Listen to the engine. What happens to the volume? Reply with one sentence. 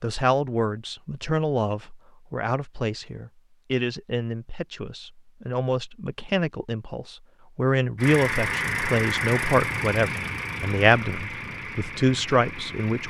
The volume of the engine goes down.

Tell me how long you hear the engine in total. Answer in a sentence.
You can hear the engine for 5 seconds altogether.